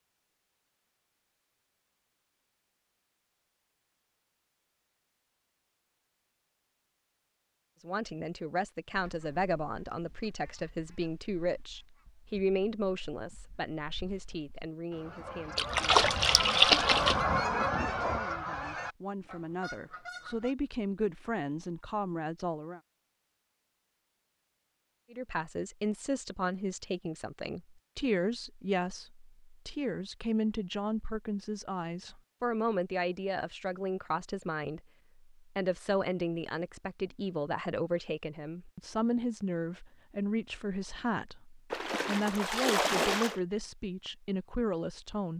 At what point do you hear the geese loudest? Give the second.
17 s.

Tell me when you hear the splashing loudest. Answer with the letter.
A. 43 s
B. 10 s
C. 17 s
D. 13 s
C.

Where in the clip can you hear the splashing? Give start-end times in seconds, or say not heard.
15.6-17.2, 41.7-43.4.